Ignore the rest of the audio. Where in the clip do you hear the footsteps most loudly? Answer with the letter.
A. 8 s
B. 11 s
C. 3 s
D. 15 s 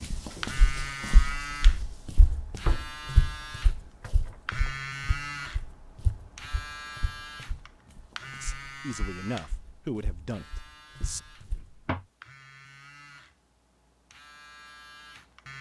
C.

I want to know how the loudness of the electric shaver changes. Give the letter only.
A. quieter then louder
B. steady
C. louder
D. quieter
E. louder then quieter
D.